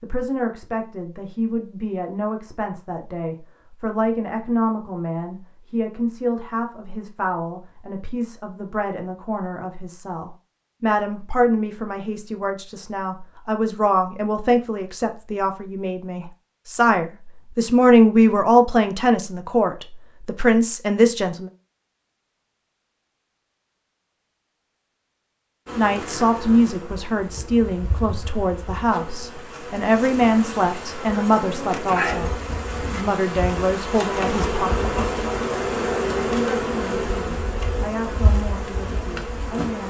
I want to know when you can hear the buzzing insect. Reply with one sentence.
The buzzing insect can be heard from 25.6 to 39.8 s.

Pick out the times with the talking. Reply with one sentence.
You can hear the talking from 0.0 to 21.5 s, from 25.8 to 35.2 s and from 36.2 to 39.8 s.